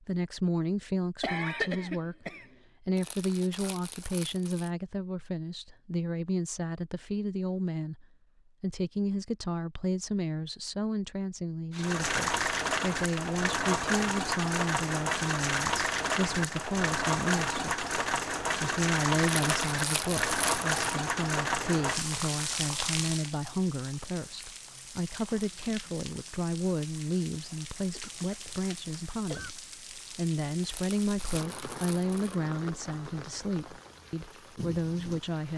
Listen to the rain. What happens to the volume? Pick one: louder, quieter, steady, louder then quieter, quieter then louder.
quieter.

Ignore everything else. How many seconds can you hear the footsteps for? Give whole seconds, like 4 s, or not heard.
not heard.